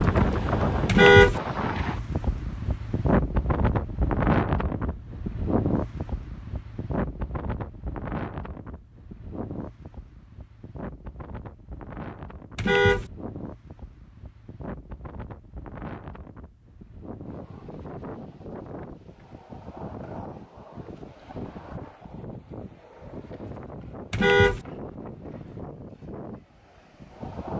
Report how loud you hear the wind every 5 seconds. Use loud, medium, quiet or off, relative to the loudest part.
loud, medium, quiet, quiet, quiet, quiet.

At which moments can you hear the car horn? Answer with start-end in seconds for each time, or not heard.
0.8-1.4, 12.6-13.1, 24.1-24.6.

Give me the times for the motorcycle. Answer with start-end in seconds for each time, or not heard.
not heard.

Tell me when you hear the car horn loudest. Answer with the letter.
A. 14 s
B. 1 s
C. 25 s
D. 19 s
B.